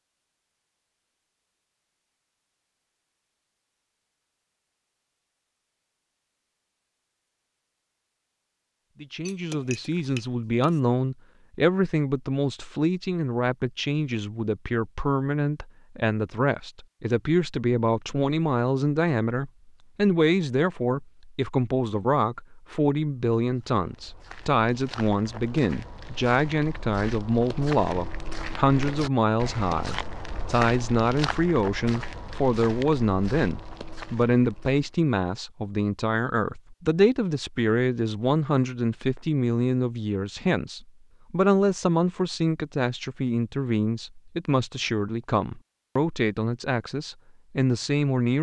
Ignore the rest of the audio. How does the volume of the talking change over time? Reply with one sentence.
The loudness of the talking stays about the same.